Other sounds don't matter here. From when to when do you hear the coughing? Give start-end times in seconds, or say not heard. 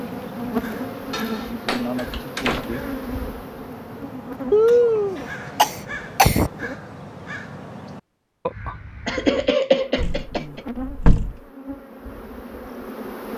1.1-2.2, 4.5-6.5, 9.1-10.6.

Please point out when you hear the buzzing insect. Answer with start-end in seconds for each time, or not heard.
0.0-6.8, 9.7-13.3.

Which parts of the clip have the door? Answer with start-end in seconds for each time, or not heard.
1.6-2.7, 9.9-11.3.